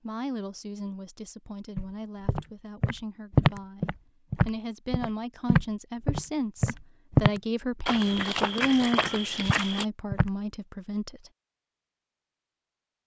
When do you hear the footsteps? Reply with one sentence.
The footsteps can be heard from 1.8 to 10.3 s.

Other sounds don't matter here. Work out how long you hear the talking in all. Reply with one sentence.
You can hear the talking for 11 seconds altogether.